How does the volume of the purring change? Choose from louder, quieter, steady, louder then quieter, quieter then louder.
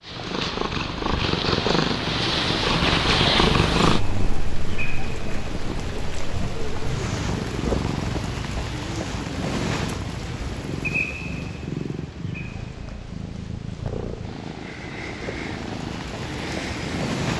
quieter.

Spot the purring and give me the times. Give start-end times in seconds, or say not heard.
0.0-17.3.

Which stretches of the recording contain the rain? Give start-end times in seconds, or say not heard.
3.8-17.3.